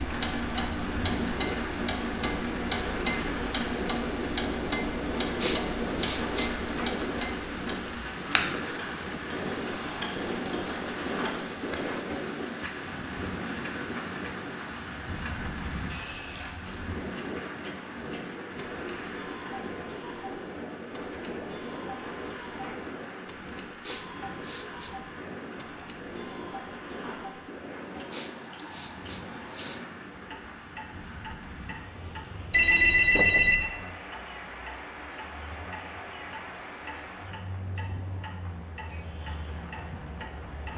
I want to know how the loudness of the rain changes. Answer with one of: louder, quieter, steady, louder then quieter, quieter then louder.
quieter.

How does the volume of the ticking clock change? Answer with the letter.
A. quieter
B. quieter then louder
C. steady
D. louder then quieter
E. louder
A.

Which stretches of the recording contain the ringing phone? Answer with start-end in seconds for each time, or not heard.
32.5-33.6.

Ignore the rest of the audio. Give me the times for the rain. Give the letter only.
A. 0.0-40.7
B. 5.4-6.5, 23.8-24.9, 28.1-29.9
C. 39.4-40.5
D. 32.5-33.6
A.